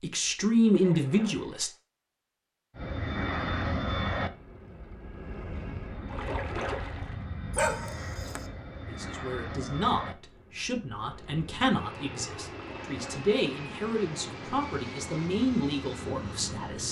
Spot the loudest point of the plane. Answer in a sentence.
The volume of the plane peaks at 4 seconds.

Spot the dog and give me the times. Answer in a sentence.
You can hear the dog from 7.5 to 8.4 s.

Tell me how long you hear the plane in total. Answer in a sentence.
You can hear the plane for 14 seconds altogether.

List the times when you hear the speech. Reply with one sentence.
You can hear the speech from 0.0 to 1.7 s and from 8.8 to 16.8 s.